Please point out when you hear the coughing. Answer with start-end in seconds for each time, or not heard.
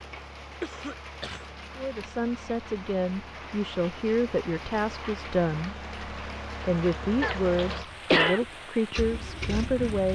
0.6-1.4, 7.2-8.4.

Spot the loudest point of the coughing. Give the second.
8 s.